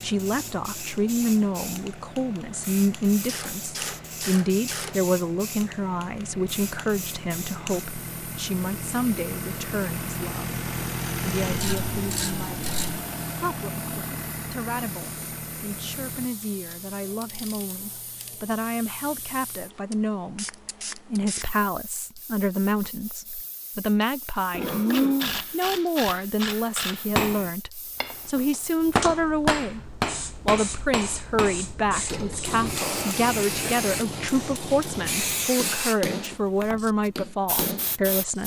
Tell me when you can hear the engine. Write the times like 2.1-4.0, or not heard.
0.0-16.3.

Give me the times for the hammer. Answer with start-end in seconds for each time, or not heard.
27.1-38.4.